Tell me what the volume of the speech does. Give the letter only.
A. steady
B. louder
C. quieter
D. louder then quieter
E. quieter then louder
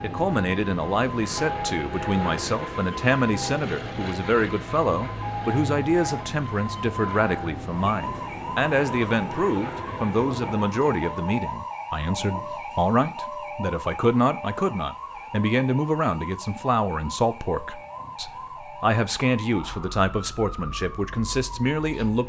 A.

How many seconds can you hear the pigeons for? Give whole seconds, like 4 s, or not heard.
not heard.